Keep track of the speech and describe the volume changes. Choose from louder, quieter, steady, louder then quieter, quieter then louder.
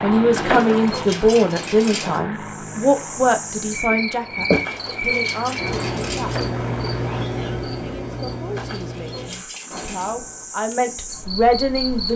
quieter then louder.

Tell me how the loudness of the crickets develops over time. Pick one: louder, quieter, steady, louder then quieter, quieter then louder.
quieter.